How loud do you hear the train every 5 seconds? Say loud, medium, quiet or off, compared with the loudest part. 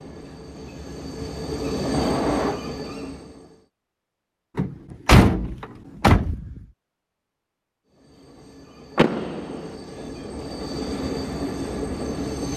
loud, quiet, loud.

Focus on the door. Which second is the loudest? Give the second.
5 s.